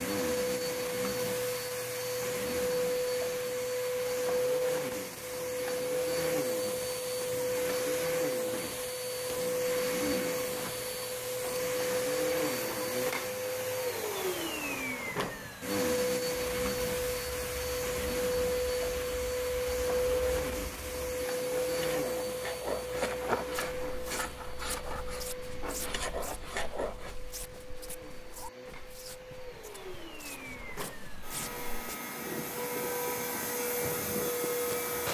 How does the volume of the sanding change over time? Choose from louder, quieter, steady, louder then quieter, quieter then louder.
louder.